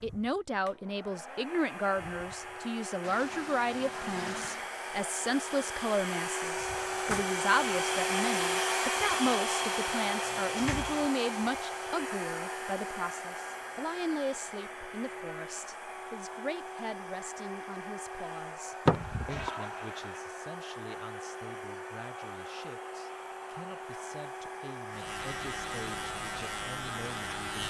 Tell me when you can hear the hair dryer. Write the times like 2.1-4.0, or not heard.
0.0-27.6.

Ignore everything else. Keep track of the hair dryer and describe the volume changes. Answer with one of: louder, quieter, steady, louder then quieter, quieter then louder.
louder then quieter.